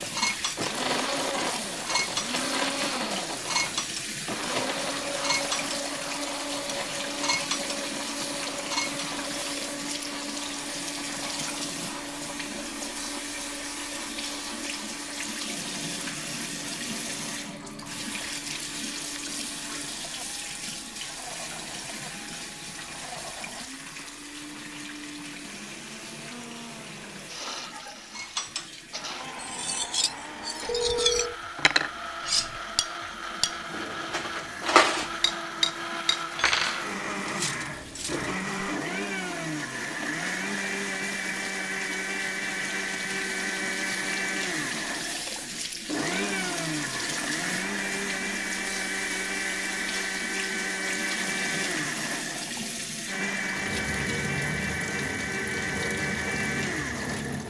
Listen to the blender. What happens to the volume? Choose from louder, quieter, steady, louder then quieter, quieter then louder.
quieter then louder.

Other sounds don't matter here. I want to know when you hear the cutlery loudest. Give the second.
35 s.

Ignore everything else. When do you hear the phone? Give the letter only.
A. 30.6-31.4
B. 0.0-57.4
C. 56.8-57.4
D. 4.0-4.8
A.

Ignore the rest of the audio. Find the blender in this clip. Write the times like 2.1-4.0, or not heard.
0.0-57.4.